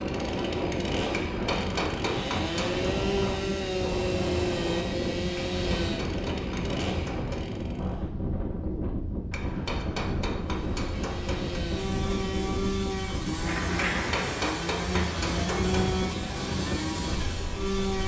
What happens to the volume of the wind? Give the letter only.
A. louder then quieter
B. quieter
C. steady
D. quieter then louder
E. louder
C.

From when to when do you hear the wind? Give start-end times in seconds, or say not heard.
0.0-18.0.